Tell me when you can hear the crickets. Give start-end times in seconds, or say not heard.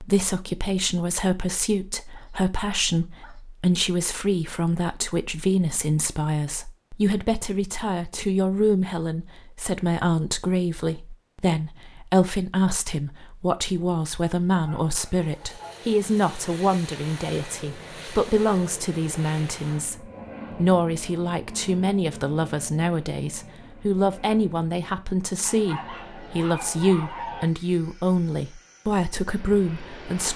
not heard.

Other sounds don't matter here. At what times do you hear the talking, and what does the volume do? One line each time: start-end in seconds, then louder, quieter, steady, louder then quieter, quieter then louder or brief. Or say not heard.
0.0-30.3 steady.